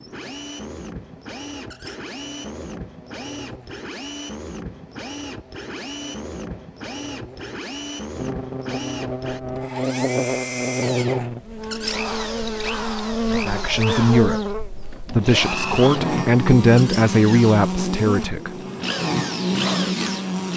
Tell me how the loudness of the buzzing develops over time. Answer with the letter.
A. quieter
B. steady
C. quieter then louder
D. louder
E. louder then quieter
D.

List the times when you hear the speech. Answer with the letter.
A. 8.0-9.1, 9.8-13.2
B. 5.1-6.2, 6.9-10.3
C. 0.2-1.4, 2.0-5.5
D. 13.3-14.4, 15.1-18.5
D.